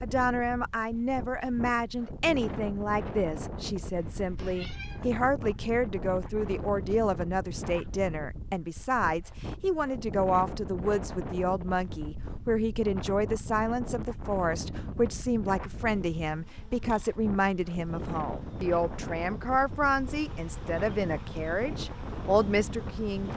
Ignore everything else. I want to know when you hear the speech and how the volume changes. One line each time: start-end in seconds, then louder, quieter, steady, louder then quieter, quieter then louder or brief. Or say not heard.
0.0-23.3 steady.